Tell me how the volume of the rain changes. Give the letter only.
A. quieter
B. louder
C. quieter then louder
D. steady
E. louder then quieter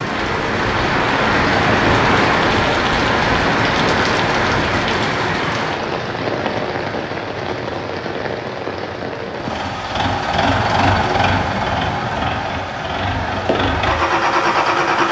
A.